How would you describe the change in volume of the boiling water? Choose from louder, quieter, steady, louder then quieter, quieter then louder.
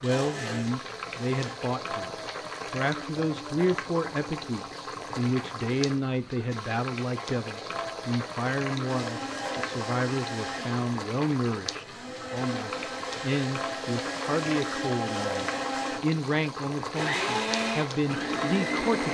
steady.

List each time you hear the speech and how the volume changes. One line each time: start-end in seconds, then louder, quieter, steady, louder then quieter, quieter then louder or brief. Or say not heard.
0.0-19.0 steady.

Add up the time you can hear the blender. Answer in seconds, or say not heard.
12 s.